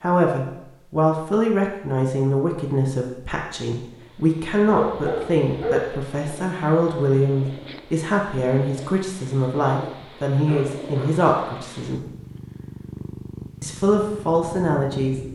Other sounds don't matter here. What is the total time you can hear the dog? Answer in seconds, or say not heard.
2 s.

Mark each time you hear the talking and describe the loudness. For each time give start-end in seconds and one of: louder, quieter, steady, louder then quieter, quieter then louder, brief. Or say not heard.
0.0-12.0 steady
13.6-15.2 brief.